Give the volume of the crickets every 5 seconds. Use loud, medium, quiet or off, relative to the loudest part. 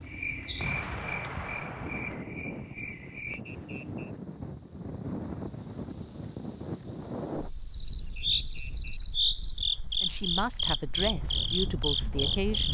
medium, loud, loud.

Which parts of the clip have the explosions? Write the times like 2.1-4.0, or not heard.
0.6-2.2.